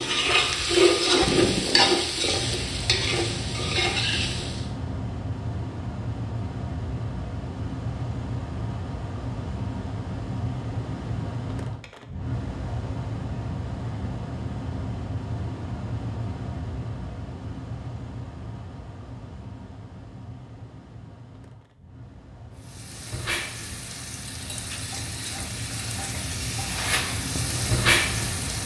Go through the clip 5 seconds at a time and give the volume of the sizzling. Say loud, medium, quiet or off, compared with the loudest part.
loud, off, off, off, quiet, medium.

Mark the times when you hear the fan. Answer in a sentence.
You can hear the fan from 0.0 to 28.6 s.